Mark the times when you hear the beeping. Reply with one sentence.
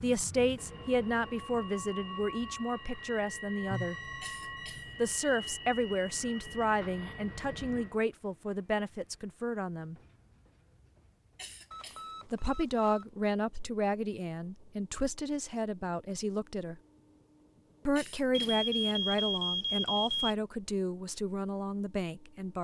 The beeping can be heard from 3.7 to 5.2 s, from 11.7 to 13.1 s and from 18.3 to 20.4 s.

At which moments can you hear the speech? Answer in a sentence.
You can hear the speech from 0.0 to 4.0 s, from 5.0 to 9.9 s, from 12.3 to 16.8 s and from 17.9 to 22.5 s.